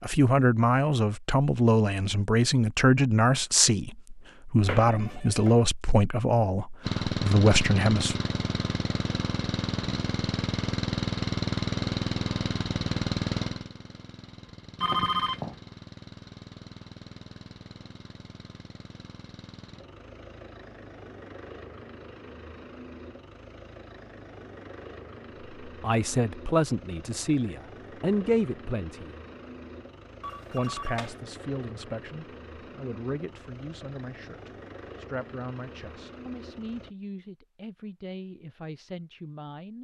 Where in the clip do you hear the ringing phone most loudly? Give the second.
15 s.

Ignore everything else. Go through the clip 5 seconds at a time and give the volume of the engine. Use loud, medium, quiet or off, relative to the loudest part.
off, loud, loud, quiet, quiet, quiet, quiet, quiet.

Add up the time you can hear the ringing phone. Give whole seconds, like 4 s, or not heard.
3 s.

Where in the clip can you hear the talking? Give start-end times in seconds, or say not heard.
0.0-8.2, 25.6-29.1, 30.5-39.7.